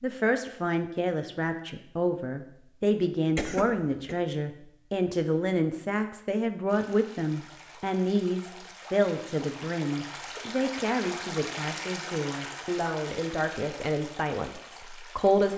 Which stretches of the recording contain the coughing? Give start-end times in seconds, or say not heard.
3.4-4.2.